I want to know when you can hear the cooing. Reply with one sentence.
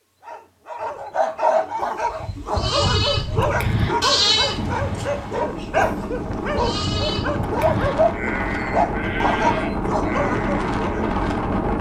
The cooing can't be heard in this clip.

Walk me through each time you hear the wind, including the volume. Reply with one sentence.
The wind can be heard from 3.0 to 11.7 s, getting louder.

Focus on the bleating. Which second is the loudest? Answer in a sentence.
The volume of the bleating peaks at 4 seconds.